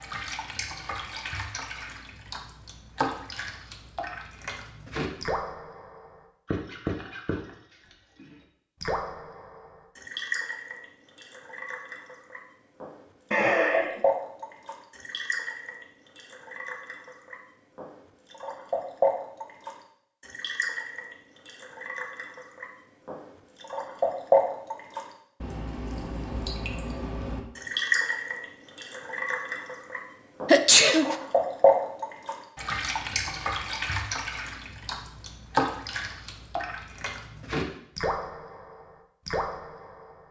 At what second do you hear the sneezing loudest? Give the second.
31 s.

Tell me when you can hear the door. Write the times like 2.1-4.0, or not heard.
not heard.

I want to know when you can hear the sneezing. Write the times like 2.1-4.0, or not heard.
13.3-14.0, 30.4-31.1.